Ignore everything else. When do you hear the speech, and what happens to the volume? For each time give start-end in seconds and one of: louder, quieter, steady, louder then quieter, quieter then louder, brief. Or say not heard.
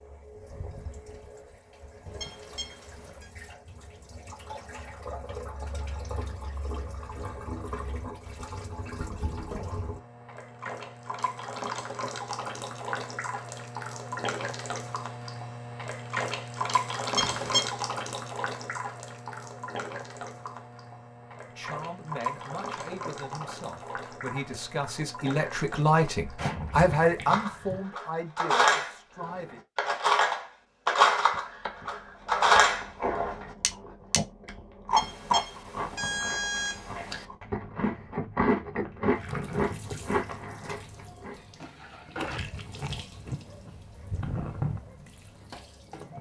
21.4-29.6 louder then quieter.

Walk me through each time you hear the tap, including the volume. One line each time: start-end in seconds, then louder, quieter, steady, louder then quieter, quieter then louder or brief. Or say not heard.
0.0-27.9 louder
39.1-46.1 quieter then louder.